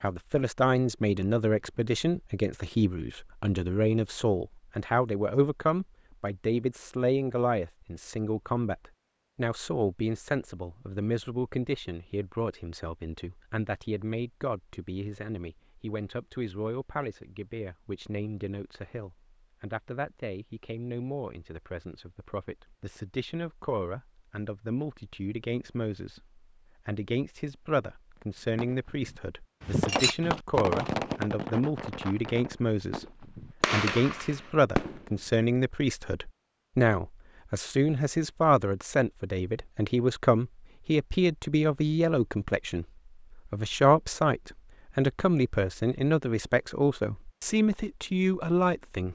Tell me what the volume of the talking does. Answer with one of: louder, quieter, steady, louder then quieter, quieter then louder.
quieter then louder.